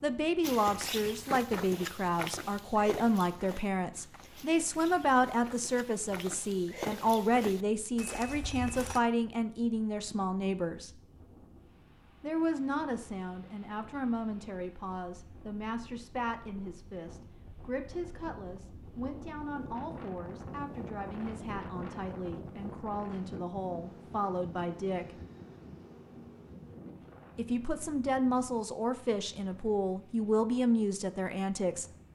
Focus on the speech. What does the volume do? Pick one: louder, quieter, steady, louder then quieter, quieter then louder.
quieter then louder.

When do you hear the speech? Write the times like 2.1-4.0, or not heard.
0.0-11.0, 12.2-25.2, 27.4-31.9.